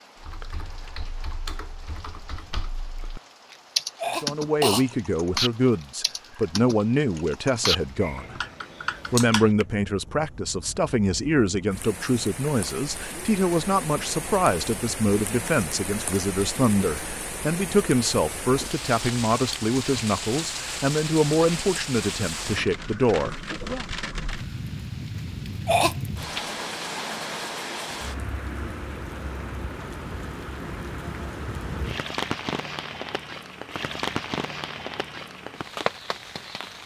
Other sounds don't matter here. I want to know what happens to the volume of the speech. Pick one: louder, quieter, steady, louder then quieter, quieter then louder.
steady.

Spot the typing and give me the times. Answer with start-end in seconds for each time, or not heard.
0.2-9.7.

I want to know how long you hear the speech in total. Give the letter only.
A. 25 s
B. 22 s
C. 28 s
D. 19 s
D.